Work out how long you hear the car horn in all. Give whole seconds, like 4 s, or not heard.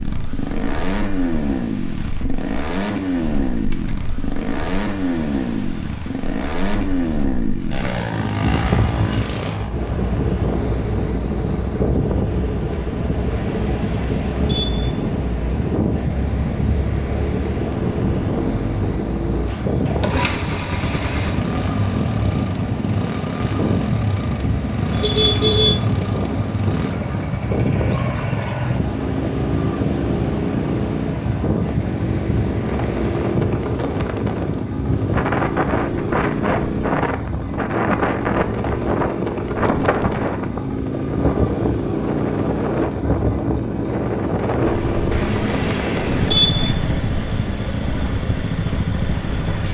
4 s.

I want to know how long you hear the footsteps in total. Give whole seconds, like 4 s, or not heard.
not heard.